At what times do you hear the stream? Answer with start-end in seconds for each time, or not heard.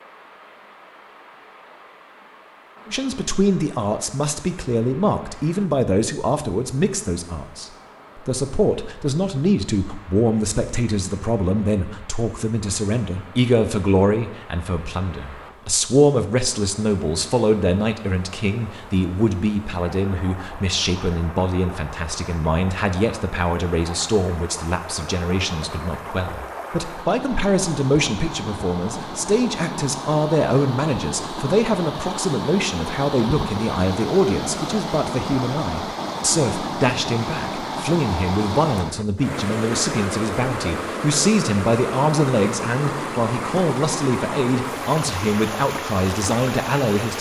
0.0-47.1.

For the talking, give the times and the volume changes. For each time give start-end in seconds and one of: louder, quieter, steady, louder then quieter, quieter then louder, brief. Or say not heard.
2.9-47.1 steady.